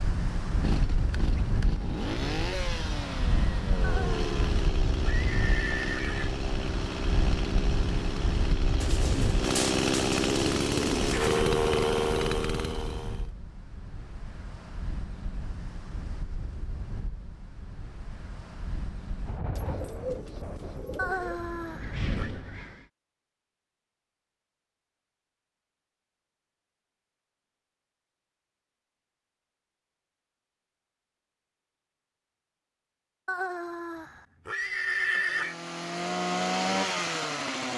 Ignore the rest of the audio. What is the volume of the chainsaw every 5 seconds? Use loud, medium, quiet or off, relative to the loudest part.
medium, medium, loud, off, off, off, off, loud.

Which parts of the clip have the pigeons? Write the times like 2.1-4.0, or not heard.
8.8-11.5, 19.6-21.4.